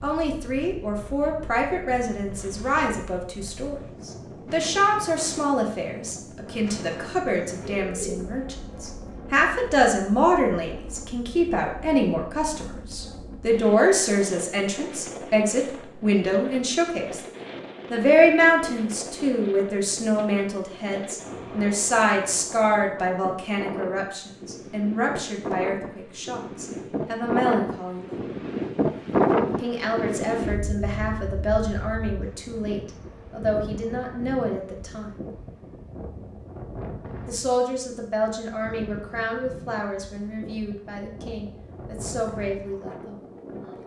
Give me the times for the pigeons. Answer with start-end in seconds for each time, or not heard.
7.6-9.2.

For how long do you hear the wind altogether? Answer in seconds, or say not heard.
44 s.